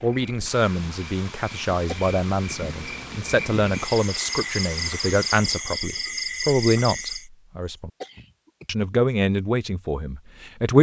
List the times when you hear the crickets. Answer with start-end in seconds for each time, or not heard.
0.0-7.2.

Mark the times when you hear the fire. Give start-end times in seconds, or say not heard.
not heard.